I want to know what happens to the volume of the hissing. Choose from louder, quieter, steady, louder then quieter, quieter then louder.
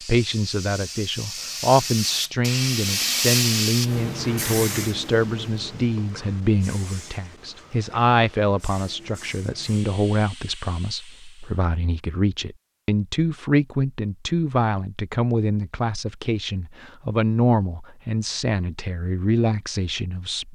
louder then quieter.